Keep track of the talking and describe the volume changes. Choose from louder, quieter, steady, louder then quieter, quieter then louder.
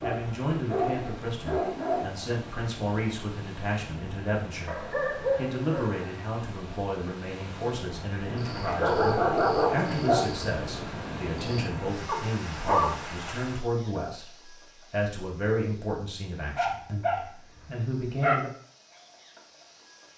steady.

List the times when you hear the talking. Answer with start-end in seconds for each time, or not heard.
0.0-18.5.